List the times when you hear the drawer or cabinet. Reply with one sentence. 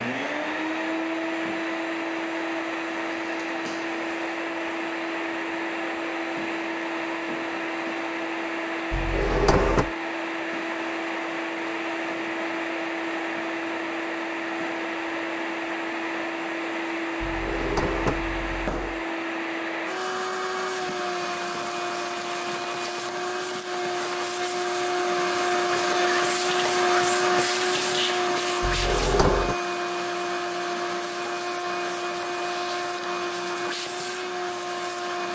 The drawer or cabinet can be heard from 8.9 to 9.9 s, from 17.2 to 19.0 s and from 28.6 to 29.6 s.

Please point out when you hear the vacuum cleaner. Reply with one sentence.
You can hear the vacuum cleaner from 0.0 to 35.3 s.